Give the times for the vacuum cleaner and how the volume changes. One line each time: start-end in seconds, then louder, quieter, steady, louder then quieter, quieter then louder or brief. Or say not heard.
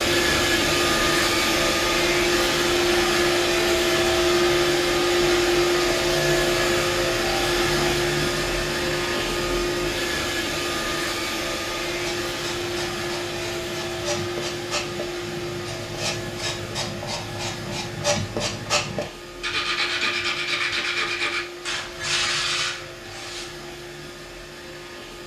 0.0-25.2 quieter.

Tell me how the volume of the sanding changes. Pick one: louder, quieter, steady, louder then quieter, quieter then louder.
louder.